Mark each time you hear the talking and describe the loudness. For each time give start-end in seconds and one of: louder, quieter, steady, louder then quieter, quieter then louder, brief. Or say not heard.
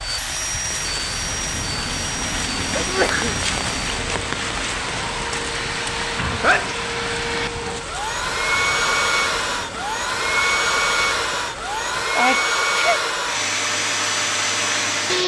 not heard.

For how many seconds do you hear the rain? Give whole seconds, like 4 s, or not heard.
12 s.